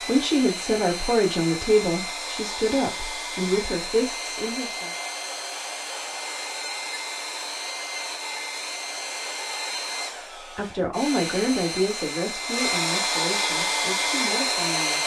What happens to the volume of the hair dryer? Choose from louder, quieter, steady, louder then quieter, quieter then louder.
louder.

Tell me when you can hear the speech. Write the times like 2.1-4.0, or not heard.
0.0-5.0, 10.6-15.0.